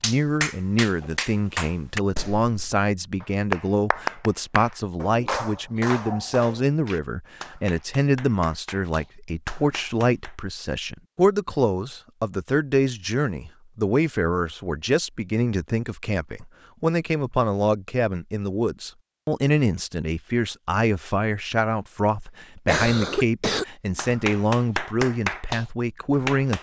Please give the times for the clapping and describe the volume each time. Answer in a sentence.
You can hear the clapping from 0.0 to 10.3 s, getting quieter; and briefly from 23.9 to 26.5 s.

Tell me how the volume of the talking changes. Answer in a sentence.
The loudness of the talking stays about the same.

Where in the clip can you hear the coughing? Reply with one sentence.
You can hear the coughing from 22.6 to 24.1 s.